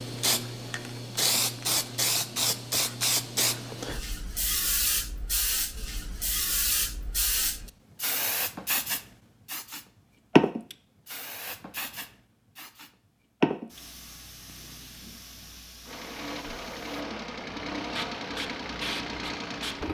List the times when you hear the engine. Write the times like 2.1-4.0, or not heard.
15.8-19.8.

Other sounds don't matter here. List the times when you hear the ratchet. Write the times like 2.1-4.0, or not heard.
not heard.